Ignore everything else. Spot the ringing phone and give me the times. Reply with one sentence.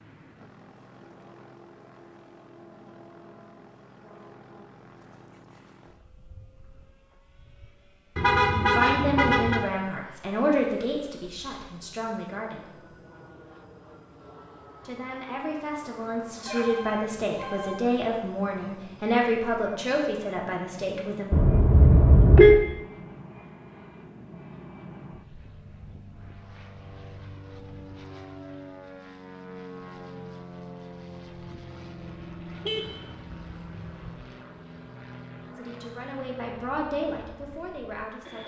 You can hear the ringing phone from 16.4 to 17.9 s.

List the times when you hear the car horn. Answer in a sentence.
The car horn can be heard from 8.2 to 9.7 s, from 21.3 to 22.6 s and from 32.5 to 34.1 s.